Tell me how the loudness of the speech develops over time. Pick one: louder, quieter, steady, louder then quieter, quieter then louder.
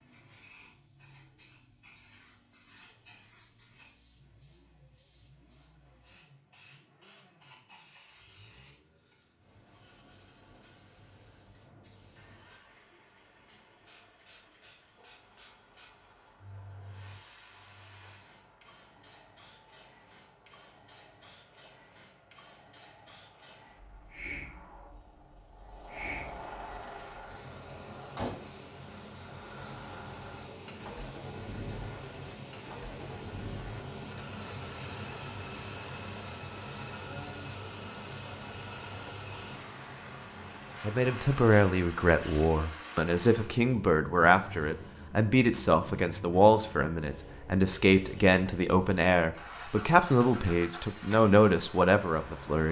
steady.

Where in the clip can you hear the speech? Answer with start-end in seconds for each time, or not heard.
40.8-52.6.